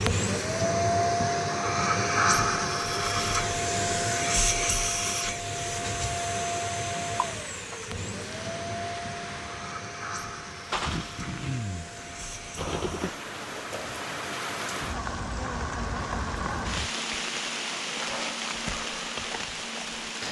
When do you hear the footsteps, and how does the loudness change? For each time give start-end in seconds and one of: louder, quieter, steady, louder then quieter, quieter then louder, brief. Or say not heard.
not heard.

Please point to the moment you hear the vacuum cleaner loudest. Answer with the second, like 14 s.
2 s.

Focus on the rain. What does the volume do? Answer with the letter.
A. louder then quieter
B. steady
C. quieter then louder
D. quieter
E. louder
E.